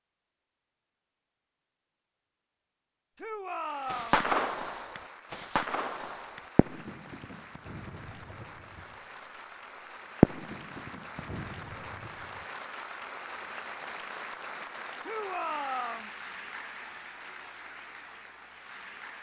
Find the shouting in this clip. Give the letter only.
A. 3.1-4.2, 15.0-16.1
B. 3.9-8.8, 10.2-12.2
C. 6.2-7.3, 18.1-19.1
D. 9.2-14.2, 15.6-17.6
A.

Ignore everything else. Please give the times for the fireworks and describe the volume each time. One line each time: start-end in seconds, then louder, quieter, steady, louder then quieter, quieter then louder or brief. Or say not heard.
3.9-8.8 quieter
10.2-12.2 brief.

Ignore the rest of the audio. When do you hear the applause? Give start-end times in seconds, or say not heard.
3.5-19.1.